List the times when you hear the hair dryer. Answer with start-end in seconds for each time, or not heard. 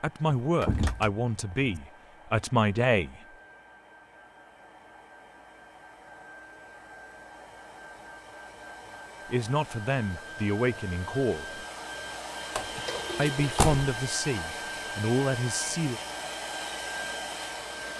0.0-17.9.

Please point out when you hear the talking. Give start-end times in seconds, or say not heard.
0.0-3.2, 9.2-11.7, 13.2-16.0.